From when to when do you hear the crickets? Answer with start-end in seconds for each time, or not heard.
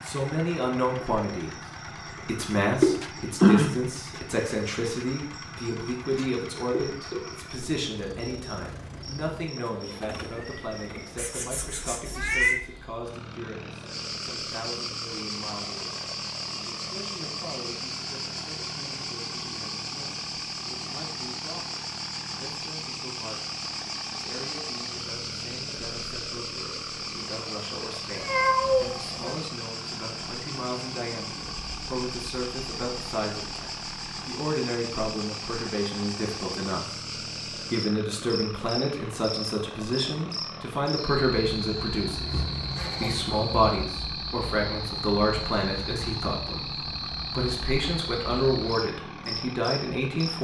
0.1-50.3.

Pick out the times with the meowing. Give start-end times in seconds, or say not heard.
11.2-12.6, 28.1-29.4, 42.2-43.9.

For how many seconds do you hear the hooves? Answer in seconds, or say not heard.
not heard.